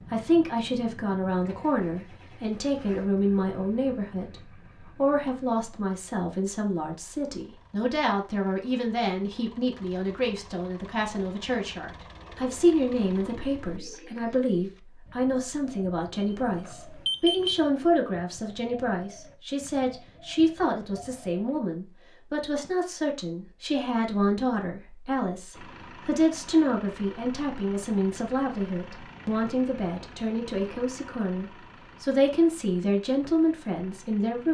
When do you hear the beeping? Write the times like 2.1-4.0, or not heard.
16.1-17.6.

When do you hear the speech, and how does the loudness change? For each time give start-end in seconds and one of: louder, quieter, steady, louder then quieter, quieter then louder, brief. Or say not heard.
0.1-34.4 steady.